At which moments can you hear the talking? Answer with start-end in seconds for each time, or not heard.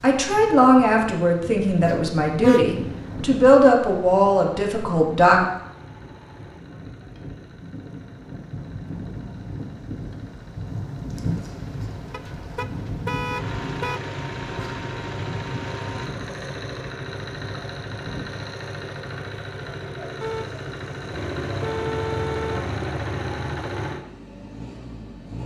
0.0-5.4.